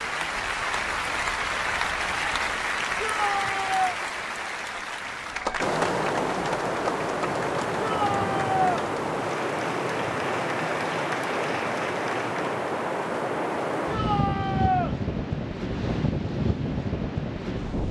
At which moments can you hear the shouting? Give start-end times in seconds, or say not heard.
3.0-4.0, 7.8-8.7, 13.8-14.9.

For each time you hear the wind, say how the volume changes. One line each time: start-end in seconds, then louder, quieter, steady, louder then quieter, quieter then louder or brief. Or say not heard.
5.5-17.8 steady.